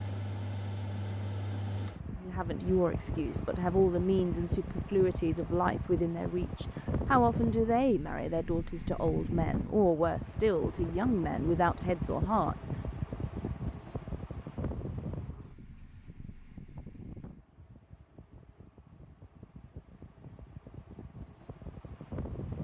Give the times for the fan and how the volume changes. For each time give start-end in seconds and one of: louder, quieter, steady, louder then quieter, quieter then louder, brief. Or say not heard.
0.0-22.6 quieter.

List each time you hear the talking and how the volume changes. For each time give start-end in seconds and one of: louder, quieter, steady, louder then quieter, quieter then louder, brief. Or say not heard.
2.1-12.6 steady.